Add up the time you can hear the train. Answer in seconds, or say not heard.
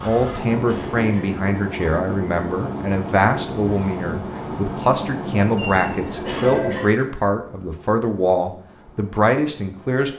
10 s.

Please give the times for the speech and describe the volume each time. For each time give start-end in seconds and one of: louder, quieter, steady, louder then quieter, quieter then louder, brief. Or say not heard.
0.0-10.1 steady.